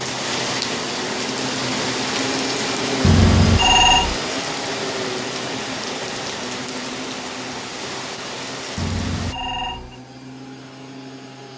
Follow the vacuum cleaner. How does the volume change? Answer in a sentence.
The loudness of the vacuum cleaner goes down.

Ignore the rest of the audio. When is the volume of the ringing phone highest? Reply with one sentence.
The volume of the ringing phone peaks at 4 seconds.